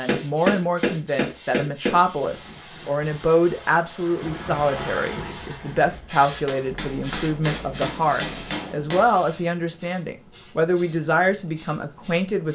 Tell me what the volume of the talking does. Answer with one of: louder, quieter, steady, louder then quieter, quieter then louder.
steady.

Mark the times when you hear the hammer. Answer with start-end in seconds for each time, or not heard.
0.1-2.0, 6.5-9.1.